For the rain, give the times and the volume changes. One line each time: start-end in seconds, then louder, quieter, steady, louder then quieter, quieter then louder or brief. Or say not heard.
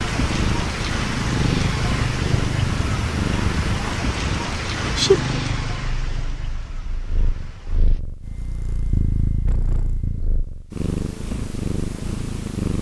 0.0-8.0 quieter.